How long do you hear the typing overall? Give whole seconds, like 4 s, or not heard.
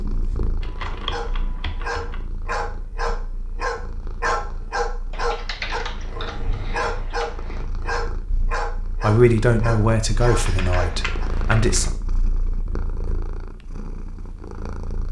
6 s.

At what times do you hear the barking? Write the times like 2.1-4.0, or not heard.
0.8-11.3.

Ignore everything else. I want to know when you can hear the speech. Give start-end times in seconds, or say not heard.
9.0-11.9.